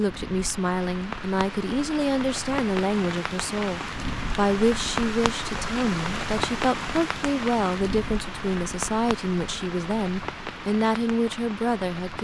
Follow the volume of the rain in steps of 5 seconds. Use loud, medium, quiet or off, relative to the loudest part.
loud, loud, medium.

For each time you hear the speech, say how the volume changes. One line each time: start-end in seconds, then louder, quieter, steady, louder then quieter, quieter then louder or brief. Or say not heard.
0.0-12.1 steady.